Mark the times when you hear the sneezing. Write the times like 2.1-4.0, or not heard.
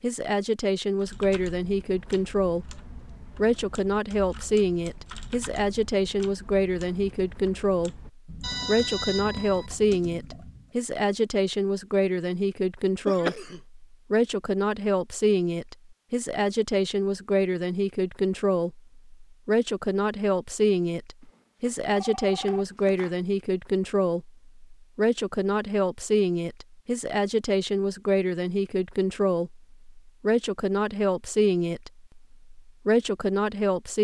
13.1-13.6.